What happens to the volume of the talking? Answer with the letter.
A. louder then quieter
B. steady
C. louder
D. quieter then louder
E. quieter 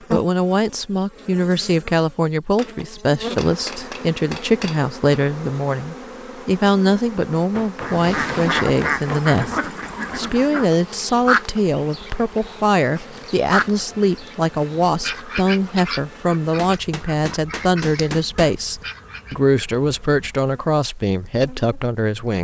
B.